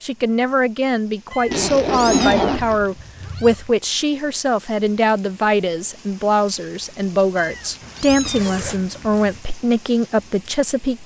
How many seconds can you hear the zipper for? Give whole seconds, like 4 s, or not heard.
3 s.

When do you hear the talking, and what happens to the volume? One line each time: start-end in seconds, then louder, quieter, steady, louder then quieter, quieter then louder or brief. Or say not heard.
0.0-11.0 steady.